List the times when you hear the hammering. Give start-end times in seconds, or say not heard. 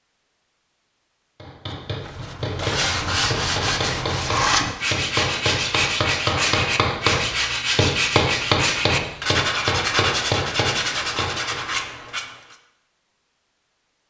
1.4-11.7.